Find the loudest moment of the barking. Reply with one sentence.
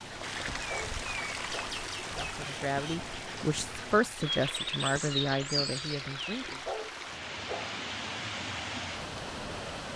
The loudest moment of the barking is at 7 seconds.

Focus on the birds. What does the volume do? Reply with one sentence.
The loudness of the birds goes up.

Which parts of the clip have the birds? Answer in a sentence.
The birds can be heard from 0.0 to 6.5 s.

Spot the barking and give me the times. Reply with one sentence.
You can hear the barking from 0.6 to 2.2 s and from 6.5 to 7.7 s.